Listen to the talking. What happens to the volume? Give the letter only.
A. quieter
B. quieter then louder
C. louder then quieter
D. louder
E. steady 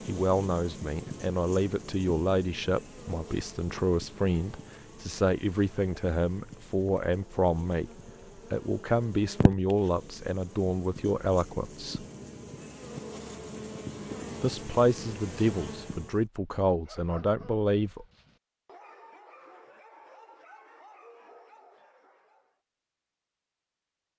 E.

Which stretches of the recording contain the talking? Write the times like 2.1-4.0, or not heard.
0.1-12.1, 14.4-18.1.